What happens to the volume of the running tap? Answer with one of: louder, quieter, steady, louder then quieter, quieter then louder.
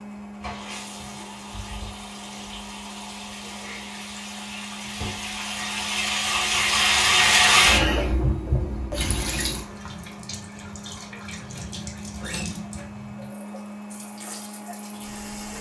louder then quieter.